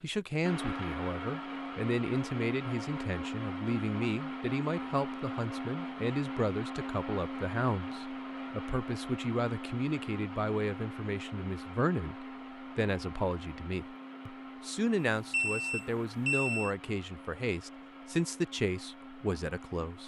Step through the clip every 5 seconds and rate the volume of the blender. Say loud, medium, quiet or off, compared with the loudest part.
loud, loud, medium, medium.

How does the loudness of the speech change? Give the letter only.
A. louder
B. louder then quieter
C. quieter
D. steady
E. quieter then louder
D.